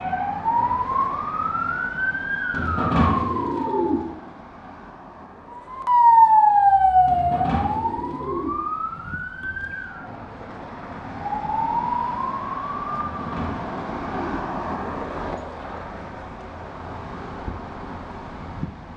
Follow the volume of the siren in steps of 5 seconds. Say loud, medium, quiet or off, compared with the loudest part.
medium, loud, medium, off.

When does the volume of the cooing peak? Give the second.
3 s.